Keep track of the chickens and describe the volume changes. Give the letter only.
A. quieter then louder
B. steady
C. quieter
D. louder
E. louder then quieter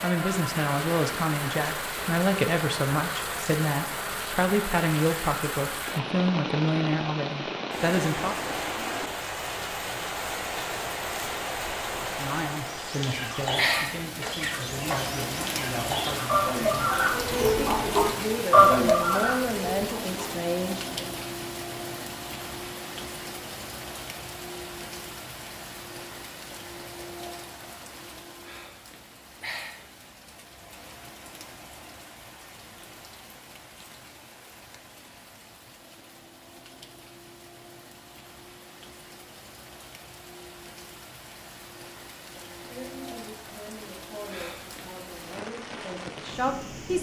D.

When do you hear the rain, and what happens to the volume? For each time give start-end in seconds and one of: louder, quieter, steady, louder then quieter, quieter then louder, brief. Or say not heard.
0.0-46.9 quieter.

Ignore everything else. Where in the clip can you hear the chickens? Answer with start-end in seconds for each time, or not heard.
12.6-20.4.